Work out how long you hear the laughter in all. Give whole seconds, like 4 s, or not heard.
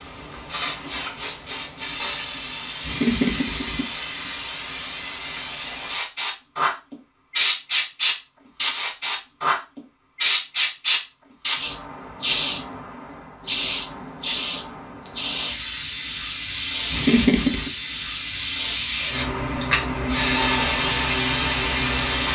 2 s.